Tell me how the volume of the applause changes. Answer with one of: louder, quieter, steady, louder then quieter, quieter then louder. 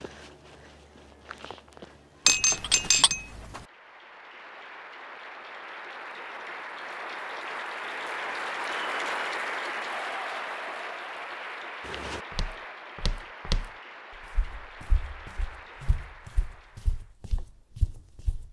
louder then quieter.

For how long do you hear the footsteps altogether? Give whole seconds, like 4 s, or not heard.
9 s.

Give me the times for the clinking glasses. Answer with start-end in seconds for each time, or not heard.
2.2-3.6.